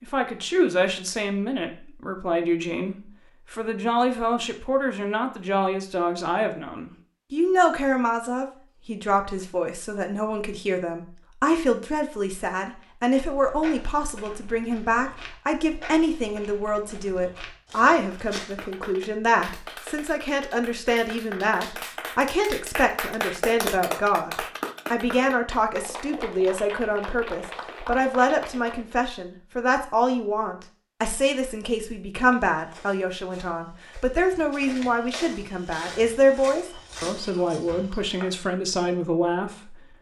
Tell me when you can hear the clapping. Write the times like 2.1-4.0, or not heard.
18.0-29.0.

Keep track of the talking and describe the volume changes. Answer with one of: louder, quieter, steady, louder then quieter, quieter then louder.
steady.